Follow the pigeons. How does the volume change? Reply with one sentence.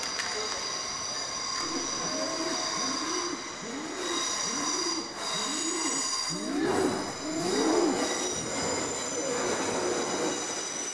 The loudness of the pigeons goes up, then down.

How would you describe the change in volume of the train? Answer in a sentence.
The volume of the train stays about the same.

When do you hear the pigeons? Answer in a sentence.
You can hear the pigeons from 1.6 to 10.3 s.